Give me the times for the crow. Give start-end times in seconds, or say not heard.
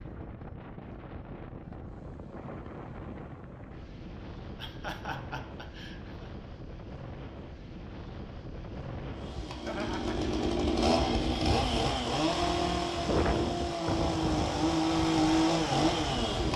not heard.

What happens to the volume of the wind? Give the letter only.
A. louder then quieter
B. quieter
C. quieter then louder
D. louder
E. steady
D.